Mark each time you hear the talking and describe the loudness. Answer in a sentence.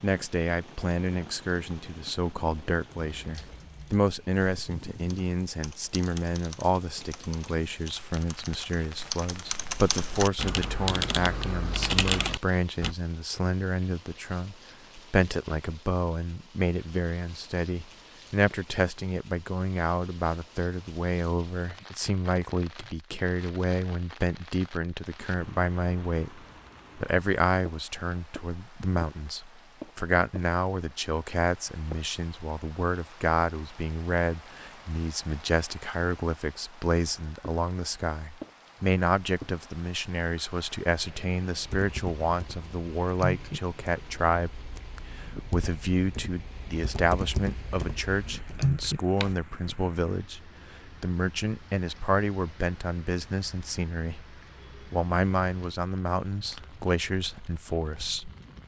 The talking can be heard from 0.0 to 58.3 s, at a steady volume.